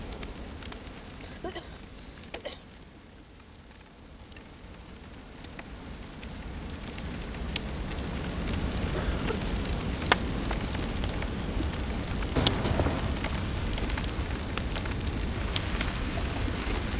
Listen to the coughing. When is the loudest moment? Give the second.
13 s.